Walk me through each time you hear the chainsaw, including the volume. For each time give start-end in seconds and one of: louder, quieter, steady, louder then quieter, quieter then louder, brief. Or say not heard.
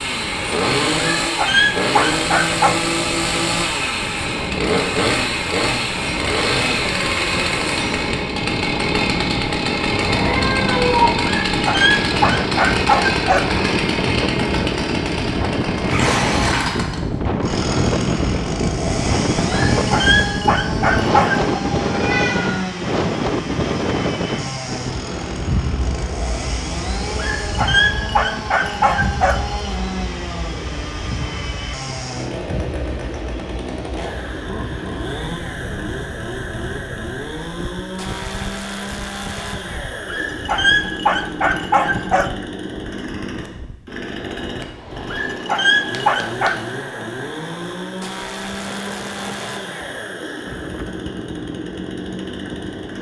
0.0-52.9 quieter.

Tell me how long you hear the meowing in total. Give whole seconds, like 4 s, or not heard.
3 s.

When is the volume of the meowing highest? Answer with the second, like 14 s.
11 s.